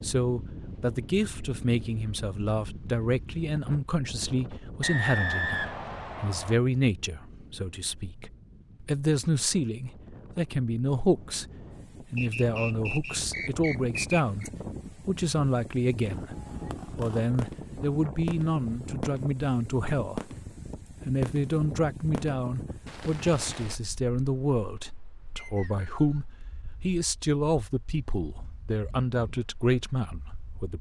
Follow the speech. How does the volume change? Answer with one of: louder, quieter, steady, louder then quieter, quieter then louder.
steady.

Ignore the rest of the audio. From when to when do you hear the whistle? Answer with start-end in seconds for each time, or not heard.
4.8-6.5, 12.2-14.5, 25.4-26.2.